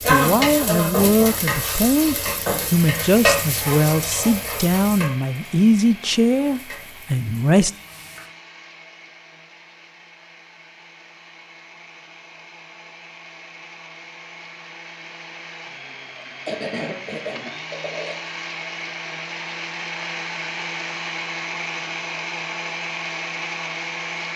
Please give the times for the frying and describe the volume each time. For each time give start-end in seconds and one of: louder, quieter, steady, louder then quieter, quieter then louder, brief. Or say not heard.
0.0-8.3 quieter.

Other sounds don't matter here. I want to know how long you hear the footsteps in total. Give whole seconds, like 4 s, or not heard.
not heard.